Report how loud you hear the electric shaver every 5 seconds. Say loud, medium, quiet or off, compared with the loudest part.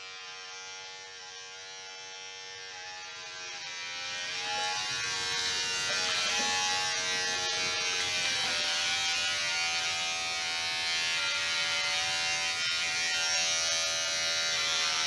medium, loud, loud.